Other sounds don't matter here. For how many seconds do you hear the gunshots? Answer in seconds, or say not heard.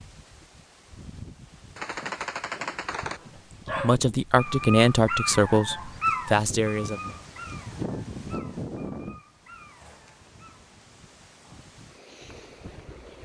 2 s.